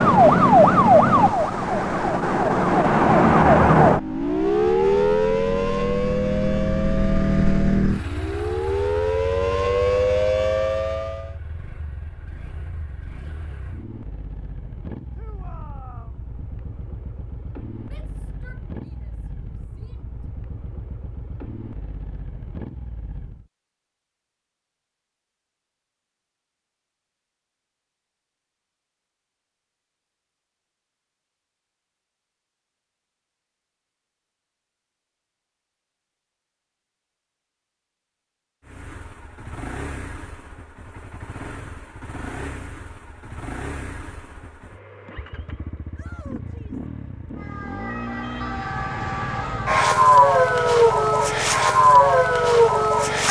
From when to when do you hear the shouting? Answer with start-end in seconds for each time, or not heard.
15.2-16.2, 17.9-20.1, 46.0-46.8.